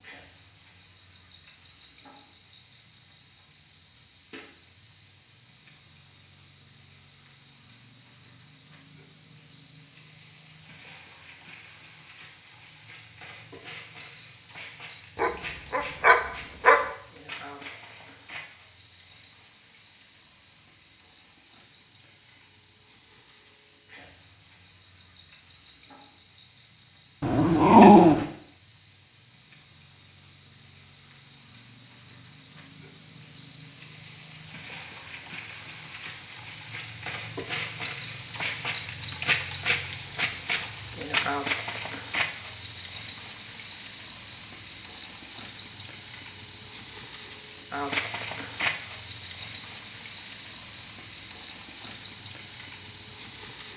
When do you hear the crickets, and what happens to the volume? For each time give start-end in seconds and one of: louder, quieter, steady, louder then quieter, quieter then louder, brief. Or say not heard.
0.0-53.7 louder.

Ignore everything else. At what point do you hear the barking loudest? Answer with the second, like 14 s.
28 s.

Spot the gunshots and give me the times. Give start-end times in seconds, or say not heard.
not heard.